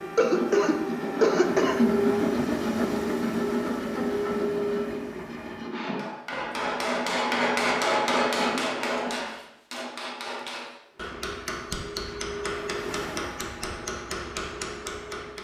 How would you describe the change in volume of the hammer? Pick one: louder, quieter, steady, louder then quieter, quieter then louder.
quieter.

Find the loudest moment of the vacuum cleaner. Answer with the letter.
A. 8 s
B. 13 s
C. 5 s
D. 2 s
D.